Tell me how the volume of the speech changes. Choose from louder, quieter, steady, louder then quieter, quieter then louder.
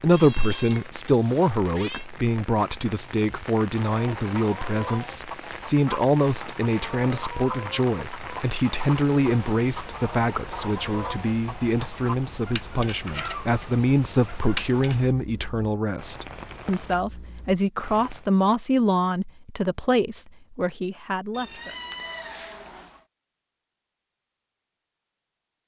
steady.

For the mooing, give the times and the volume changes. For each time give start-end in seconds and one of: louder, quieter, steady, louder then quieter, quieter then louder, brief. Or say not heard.
not heard.